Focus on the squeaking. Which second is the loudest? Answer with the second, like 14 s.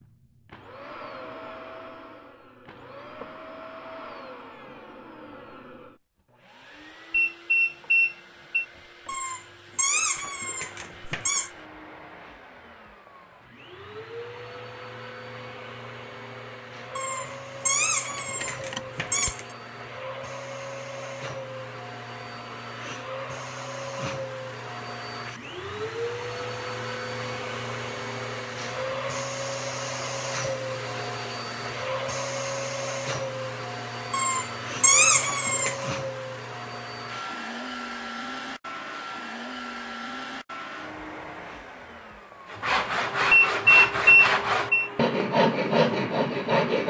35 s.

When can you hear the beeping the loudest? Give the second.
44 s.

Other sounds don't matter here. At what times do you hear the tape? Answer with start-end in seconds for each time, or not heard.
not heard.